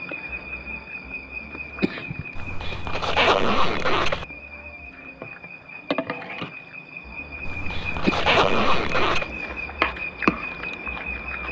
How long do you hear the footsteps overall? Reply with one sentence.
The footsteps can't be heard in this clip.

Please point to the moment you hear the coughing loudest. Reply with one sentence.
The loudest moment of the coughing is at 8 seconds.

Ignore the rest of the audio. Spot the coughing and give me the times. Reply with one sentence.
The coughing can be heard from 1.6 to 2.8 s and from 7.8 to 9.6 s.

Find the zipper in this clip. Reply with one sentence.
The zipper can be heard from 2.4 to 4.2 s and from 7.5 to 9.3 s.